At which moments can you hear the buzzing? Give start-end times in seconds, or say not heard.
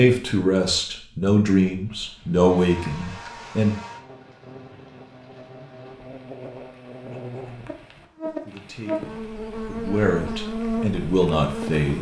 2.4-11.9.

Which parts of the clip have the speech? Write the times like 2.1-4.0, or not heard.
0.0-3.8, 8.2-11.9.